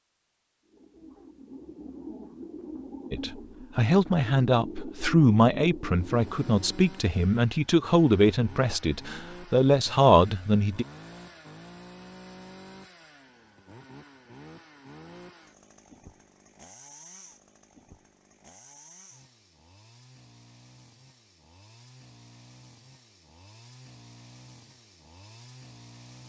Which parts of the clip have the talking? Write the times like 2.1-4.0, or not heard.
3.1-10.8.